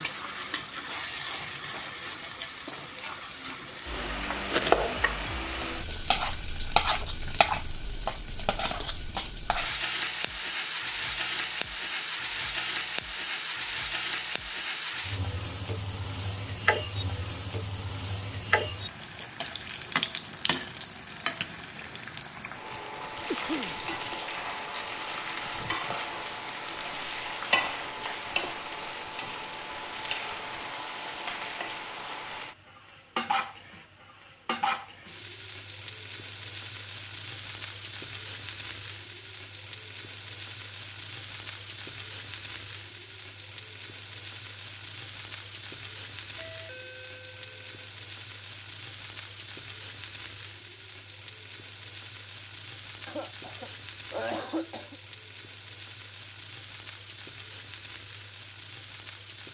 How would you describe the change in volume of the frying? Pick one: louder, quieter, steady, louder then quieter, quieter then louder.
quieter.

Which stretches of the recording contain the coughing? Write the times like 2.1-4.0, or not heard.
23.2-23.8, 53.0-55.0.